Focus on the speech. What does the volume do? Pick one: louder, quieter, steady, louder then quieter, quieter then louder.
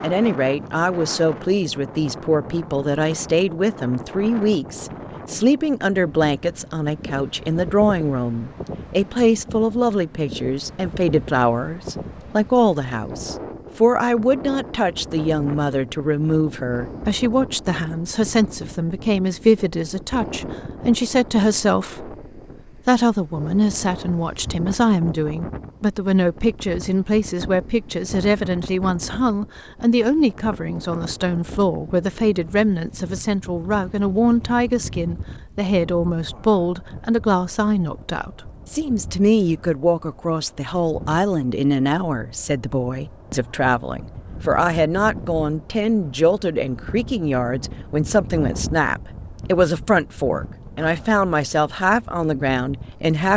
steady.